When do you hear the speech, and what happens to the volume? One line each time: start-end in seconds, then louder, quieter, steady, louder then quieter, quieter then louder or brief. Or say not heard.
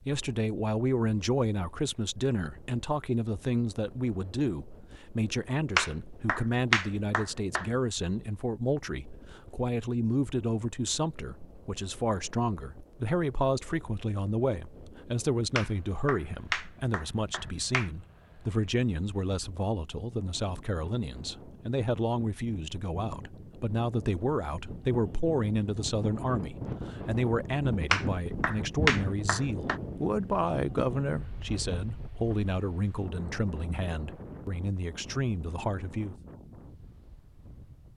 0.1-36.1 steady.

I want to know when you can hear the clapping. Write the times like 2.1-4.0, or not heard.
5.8-7.7, 15.6-17.9, 27.9-29.8.